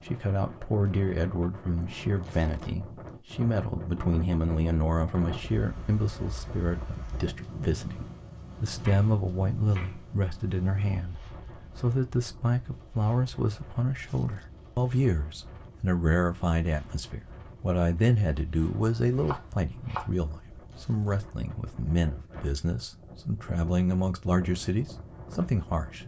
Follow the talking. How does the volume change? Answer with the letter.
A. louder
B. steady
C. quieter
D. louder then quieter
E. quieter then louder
B.